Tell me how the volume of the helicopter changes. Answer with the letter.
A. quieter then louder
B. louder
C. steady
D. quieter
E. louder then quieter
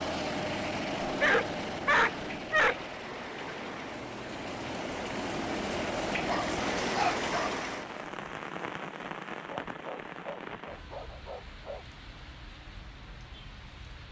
A.